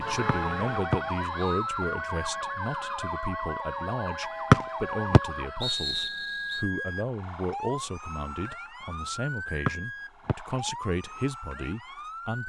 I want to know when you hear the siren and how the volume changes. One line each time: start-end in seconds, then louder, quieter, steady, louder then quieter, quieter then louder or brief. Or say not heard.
0.0-12.4 quieter.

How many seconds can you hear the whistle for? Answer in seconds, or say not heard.
4 s.